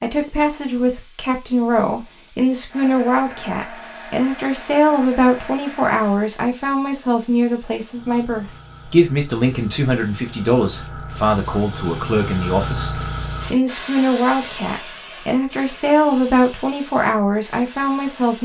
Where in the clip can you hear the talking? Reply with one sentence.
The talking can be heard from 0.0 to 18.3 s.